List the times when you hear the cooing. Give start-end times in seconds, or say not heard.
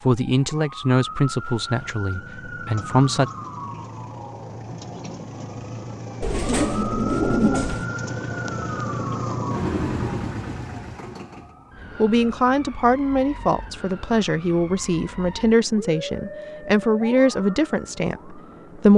6.2-7.9.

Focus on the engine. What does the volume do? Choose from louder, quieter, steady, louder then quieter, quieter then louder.
louder.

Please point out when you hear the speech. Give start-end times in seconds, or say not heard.
0.1-3.3, 11.9-18.9.